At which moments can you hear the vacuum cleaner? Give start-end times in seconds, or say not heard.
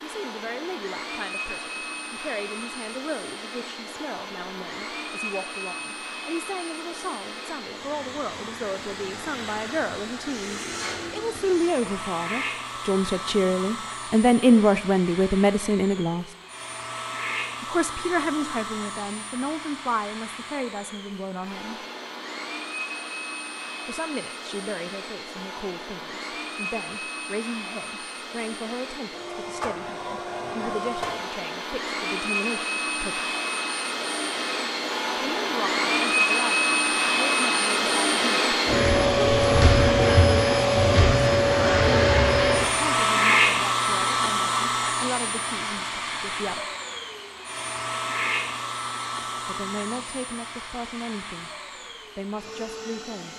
0.0-53.3.